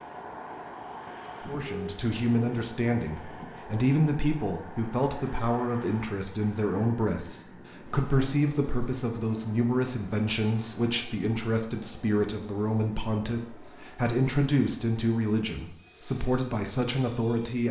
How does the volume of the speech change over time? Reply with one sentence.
The volume of the speech stays about the same.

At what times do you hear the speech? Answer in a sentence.
The speech can be heard from 1.4 to 17.6 s.